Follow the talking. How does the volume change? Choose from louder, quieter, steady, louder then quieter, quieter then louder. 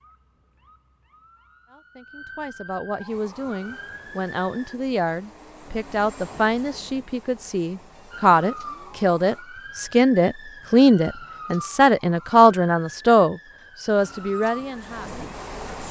louder.